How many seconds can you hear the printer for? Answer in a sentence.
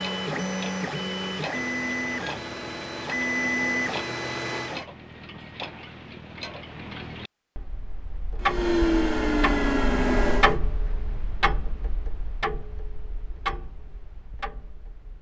The printer can be heard for 7 seconds in total.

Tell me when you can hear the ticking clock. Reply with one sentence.
You can hear the ticking clock from 0.0 to 15.1 s.